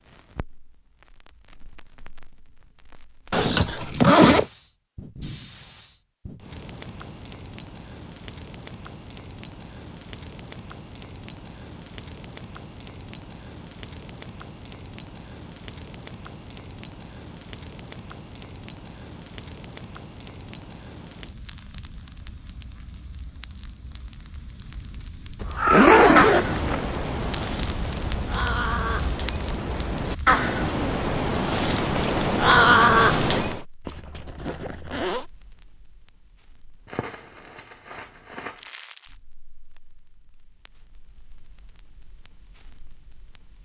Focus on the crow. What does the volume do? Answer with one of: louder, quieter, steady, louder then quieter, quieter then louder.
quieter then louder.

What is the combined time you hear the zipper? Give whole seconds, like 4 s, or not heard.
4 s.